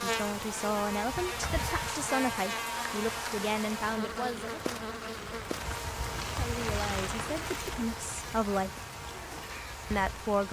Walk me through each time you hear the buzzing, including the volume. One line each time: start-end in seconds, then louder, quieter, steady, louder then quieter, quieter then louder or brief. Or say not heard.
0.0-10.4 quieter.